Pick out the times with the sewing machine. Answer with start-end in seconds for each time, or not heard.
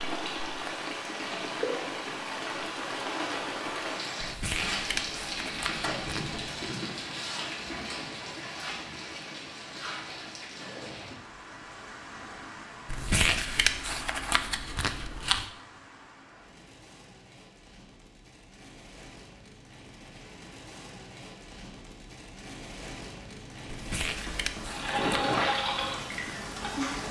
24.6-27.0.